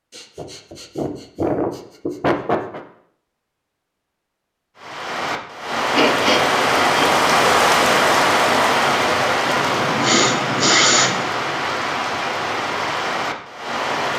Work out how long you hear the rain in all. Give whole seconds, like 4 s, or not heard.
9 s.